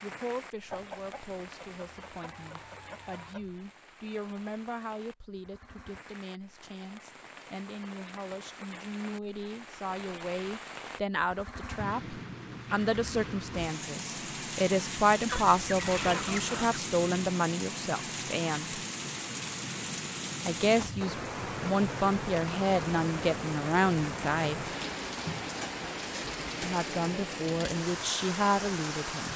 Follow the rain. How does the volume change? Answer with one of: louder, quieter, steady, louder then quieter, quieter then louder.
louder.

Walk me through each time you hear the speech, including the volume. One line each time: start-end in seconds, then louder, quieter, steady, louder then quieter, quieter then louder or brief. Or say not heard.
0.0-18.8 louder
20.4-24.6 louder
26.6-29.3 brief.